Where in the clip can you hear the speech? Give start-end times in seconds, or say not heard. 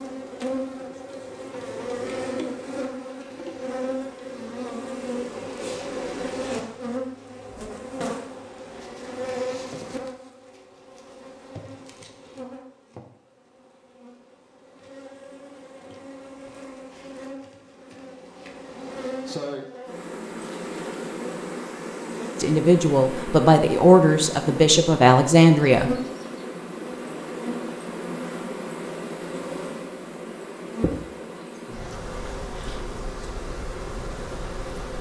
22.4-25.9.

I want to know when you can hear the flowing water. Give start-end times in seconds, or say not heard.
not heard.